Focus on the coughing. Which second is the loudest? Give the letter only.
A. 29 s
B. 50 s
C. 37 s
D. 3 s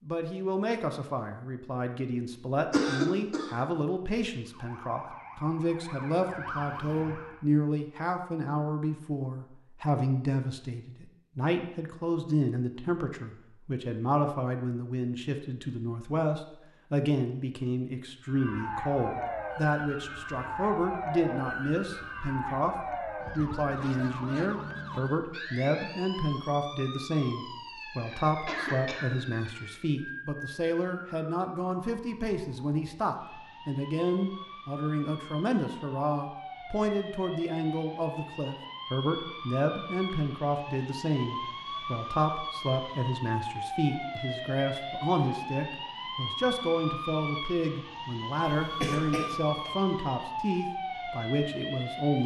D.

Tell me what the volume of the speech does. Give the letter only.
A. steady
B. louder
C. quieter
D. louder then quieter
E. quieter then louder
A.